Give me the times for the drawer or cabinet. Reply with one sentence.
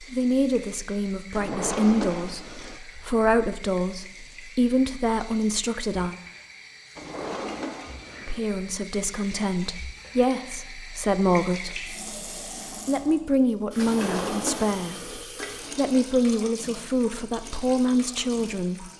You can hear the drawer or cabinet from 1.3 to 2.8 s, from 7.0 to 8.4 s and from 13.8 to 15.2 s.